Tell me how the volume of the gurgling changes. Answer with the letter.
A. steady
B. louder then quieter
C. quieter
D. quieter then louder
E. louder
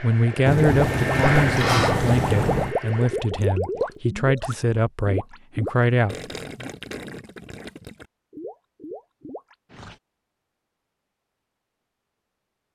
C.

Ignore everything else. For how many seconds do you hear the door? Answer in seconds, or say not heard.
2 s.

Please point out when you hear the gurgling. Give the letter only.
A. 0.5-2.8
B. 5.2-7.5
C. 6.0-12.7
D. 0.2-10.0
D.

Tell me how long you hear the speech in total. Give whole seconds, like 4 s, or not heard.
7 s.